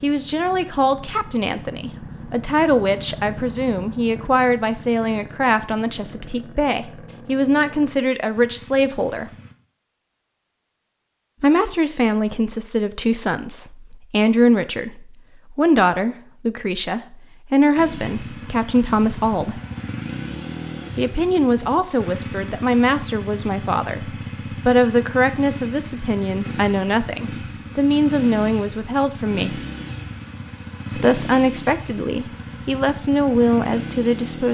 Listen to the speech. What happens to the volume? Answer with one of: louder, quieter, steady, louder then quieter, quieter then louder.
steady.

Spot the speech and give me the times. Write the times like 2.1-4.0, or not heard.
0.0-9.3, 11.4-19.6, 20.9-29.6, 30.9-34.5.